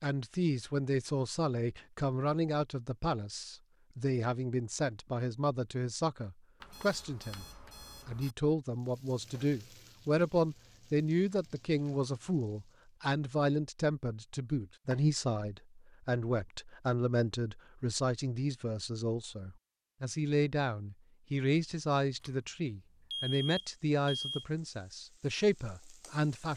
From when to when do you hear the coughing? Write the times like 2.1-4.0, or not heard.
not heard.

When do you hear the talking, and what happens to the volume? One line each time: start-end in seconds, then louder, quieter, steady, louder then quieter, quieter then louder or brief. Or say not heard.
0.0-7.5 steady
8.1-26.5 steady.